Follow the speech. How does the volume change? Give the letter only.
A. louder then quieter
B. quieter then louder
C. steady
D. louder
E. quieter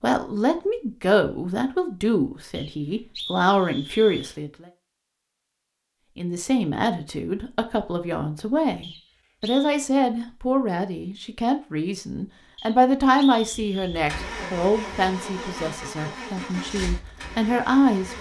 C.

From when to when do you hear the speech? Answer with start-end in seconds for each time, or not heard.
0.0-4.7, 6.2-18.1.